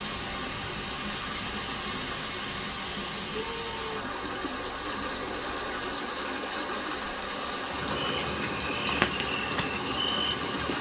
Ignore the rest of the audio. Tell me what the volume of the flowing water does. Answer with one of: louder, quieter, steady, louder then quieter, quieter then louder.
steady.